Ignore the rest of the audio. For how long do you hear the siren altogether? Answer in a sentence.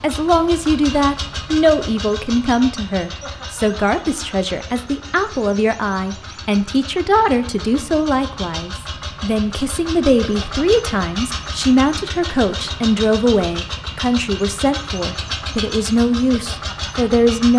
You can't hear the siren here.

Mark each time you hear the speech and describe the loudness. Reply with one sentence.
The speech can be heard from 0.0 to 17.5 s, at a steady volume.